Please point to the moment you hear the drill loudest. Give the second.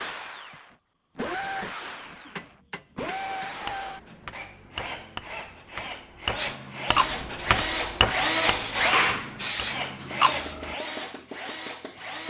9 s.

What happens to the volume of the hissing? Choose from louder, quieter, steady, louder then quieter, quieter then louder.
quieter then louder.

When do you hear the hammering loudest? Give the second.
8 s.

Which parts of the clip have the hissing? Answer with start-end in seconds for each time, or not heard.
6.3-10.8.